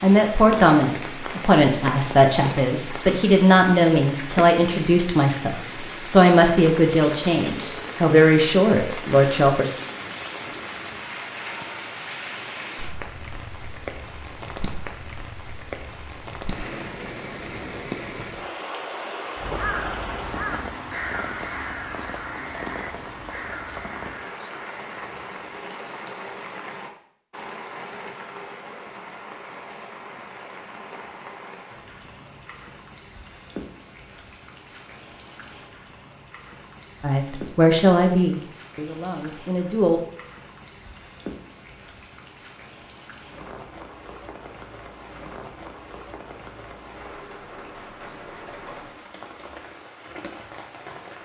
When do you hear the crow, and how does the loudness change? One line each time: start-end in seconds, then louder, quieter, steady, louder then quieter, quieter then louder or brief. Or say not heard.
19.4-24.9 quieter.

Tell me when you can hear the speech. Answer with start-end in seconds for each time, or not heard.
0.0-9.7, 37.0-40.0.